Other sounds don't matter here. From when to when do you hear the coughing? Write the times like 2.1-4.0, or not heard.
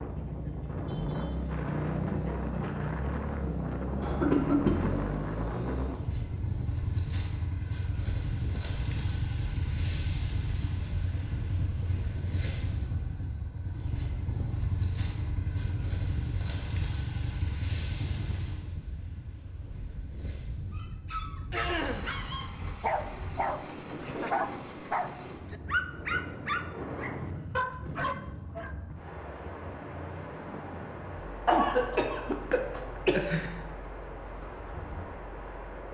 4.0-5.0, 21.5-22.1, 31.4-33.5.